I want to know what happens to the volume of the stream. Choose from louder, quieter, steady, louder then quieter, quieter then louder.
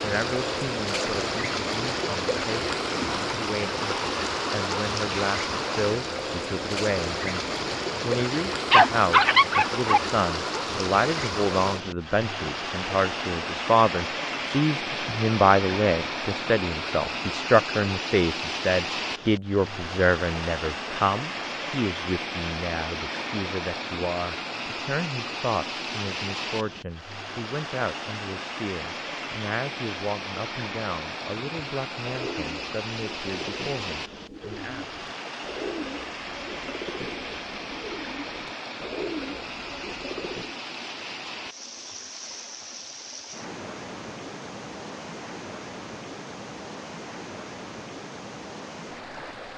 quieter.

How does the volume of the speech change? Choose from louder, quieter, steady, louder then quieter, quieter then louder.
louder then quieter.